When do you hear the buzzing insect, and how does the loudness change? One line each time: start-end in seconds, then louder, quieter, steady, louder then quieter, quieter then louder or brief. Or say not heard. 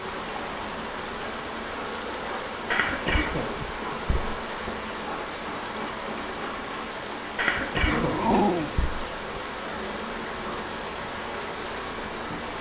0.0-12.5 steady.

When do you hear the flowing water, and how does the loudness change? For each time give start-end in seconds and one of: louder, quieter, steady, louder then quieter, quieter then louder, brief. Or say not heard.
0.0-12.5 steady.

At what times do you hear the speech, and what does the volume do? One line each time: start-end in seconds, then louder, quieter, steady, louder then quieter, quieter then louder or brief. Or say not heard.
not heard.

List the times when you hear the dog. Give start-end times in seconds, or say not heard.
7.8-8.8.